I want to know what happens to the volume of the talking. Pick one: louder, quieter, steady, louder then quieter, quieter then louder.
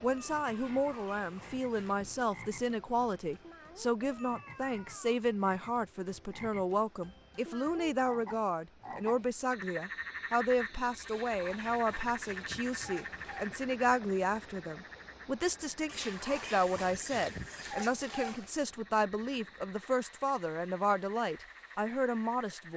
steady.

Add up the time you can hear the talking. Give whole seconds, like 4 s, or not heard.
23 s.